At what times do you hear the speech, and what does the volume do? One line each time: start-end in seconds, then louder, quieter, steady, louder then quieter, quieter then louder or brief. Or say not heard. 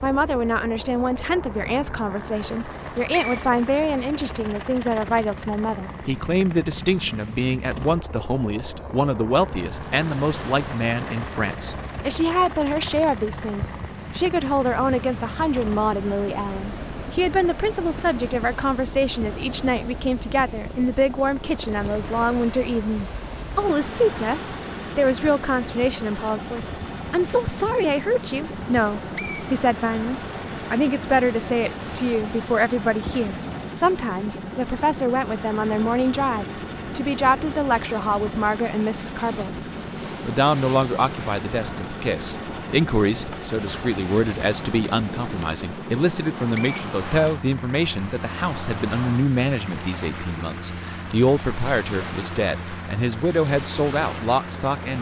0.0-54.9 steady.